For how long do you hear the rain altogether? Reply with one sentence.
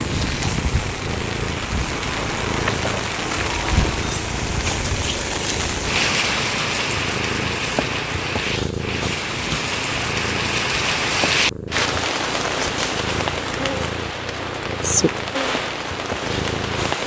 You can hear the rain for 17 seconds altogether.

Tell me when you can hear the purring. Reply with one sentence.
You can hear the purring from 0.0 to 17.0 s.